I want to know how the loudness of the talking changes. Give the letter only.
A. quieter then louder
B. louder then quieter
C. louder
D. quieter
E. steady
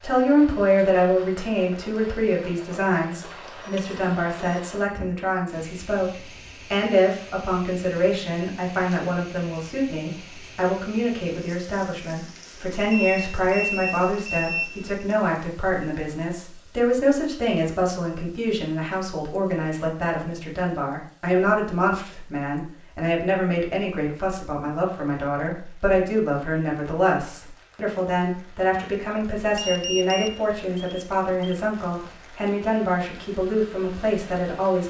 E.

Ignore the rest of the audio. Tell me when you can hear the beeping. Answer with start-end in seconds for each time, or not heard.
3.2-4.7, 12.9-14.9, 29.6-31.6.